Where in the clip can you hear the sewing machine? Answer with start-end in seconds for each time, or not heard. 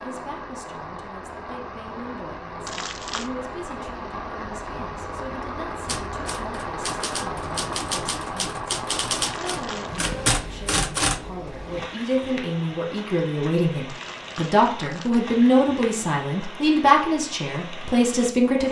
not heard.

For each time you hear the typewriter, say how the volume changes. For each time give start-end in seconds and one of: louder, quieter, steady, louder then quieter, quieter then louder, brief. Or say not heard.
5.8-11.6 louder.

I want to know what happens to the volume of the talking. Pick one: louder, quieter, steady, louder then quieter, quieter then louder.
louder.